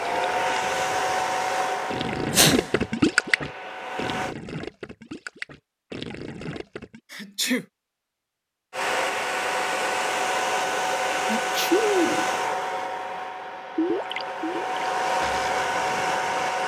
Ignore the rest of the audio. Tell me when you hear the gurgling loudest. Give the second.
3 s.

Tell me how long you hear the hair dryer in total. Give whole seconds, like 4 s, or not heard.
12 s.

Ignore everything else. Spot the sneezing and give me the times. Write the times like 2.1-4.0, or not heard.
2.3-2.7, 7.1-7.7, 11.2-12.3.